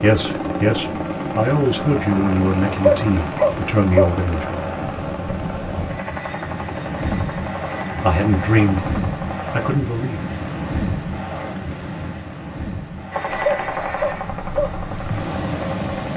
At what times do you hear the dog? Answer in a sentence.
The dog can be heard from 2.8 to 4.1 s and from 13.4 to 14.7 s.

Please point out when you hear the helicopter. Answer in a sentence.
You can hear the helicopter from 0.0 to 9.6 s and from 13.1 to 16.1 s.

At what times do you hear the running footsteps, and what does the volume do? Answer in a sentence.
The running footsteps can't be heard in this clip.